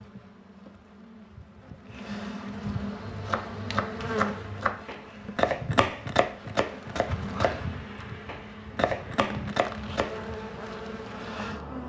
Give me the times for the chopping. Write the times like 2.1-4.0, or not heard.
3.0-10.2.